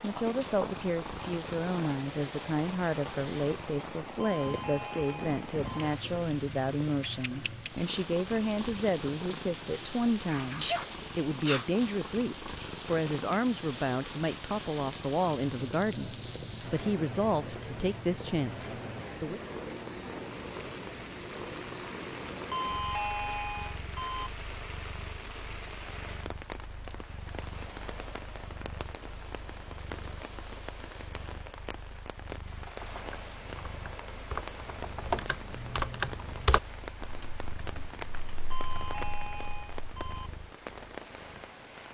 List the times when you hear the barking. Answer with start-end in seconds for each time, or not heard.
not heard.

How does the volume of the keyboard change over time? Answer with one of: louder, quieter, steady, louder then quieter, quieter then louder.
louder then quieter.